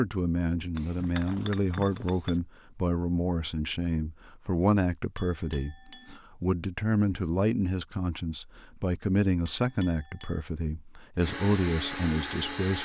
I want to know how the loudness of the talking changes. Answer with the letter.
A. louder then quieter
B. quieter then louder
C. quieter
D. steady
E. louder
D.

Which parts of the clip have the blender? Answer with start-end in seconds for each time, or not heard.
11.2-12.7.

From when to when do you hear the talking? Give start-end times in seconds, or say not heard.
0.0-12.7.